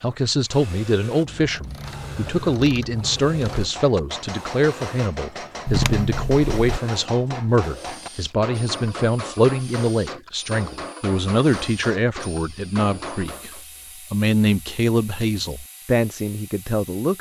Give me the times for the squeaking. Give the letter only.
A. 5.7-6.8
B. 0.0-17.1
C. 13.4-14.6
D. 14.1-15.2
A.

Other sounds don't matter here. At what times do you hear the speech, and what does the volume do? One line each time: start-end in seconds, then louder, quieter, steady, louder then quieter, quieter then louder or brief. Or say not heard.
0.0-17.1 steady.